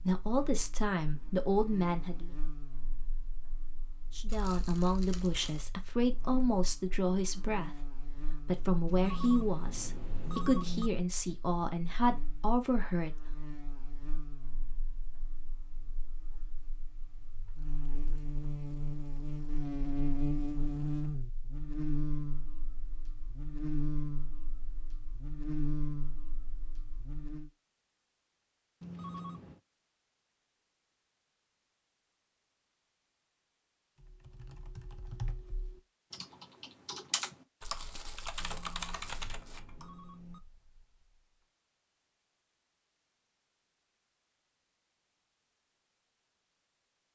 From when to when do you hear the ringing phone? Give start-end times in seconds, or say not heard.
8.8-10.9, 28.8-29.6, 38.4-40.4.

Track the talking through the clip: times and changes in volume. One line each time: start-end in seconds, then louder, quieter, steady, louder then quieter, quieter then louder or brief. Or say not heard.
0.0-2.3 brief
4.2-13.2 steady.